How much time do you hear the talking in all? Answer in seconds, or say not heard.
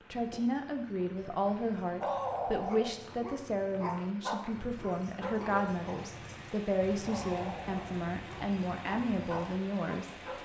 10 s.